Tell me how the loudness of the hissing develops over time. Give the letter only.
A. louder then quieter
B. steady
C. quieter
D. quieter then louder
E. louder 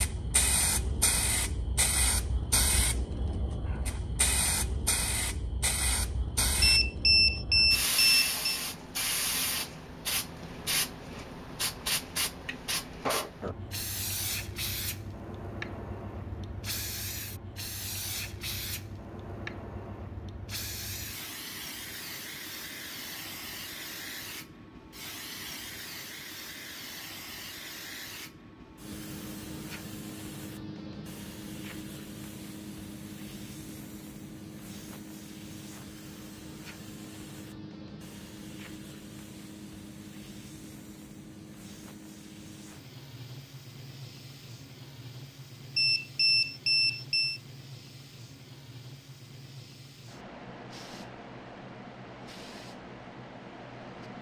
C.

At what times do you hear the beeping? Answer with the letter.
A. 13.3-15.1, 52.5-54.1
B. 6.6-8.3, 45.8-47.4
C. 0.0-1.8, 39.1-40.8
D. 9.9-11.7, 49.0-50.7
B.